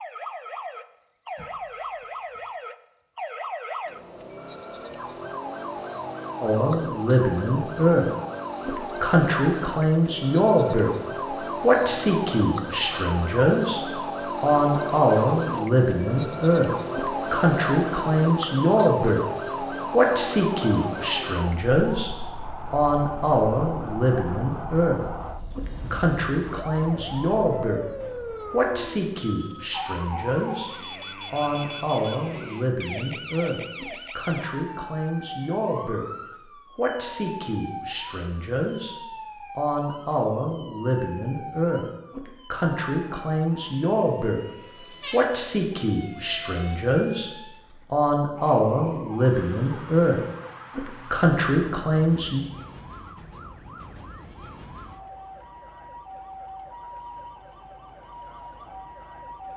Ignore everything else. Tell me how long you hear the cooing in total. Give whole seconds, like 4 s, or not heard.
not heard.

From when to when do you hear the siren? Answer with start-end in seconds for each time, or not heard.
0.0-59.5.